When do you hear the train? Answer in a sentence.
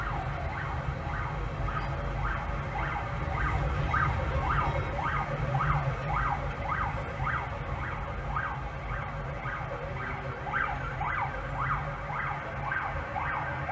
You can hear the train from 3.3 to 5.1 s.